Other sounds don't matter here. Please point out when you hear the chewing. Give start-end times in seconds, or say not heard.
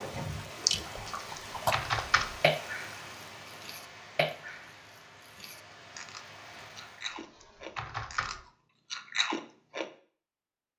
0.0-3.0, 3.6-9.9.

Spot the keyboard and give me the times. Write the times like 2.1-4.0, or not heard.
1.1-2.4, 7.1-8.4.